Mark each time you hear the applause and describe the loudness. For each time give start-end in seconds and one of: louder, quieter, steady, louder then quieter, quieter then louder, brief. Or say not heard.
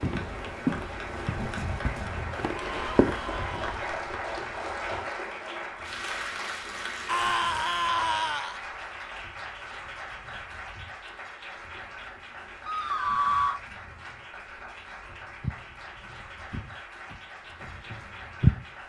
0.0-18.8 quieter.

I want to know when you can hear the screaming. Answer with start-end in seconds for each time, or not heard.
2.6-3.8, 7.0-8.6, 12.7-13.6.